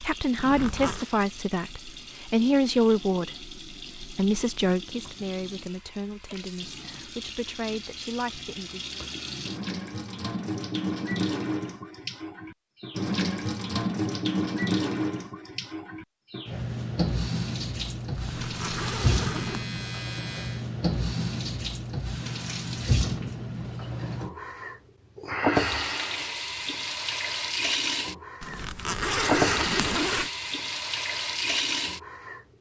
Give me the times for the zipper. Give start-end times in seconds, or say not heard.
0.3-1.1, 18.1-19.7, 28.4-30.3.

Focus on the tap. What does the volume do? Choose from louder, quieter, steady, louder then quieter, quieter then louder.
louder.